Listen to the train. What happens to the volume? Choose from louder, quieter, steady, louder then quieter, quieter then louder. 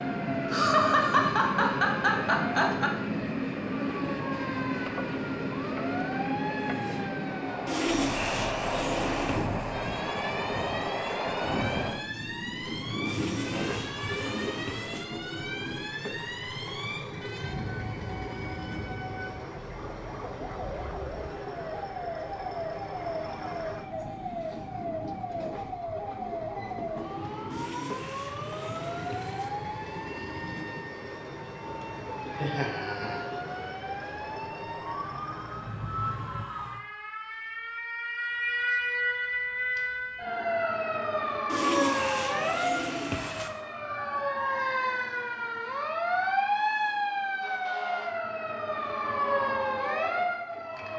quieter.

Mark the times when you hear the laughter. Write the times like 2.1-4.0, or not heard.
0.5-2.9, 32.4-33.2.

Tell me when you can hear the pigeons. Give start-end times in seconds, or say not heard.
7.7-9.4, 13.1-15.1, 27.5-29.5, 41.5-43.5.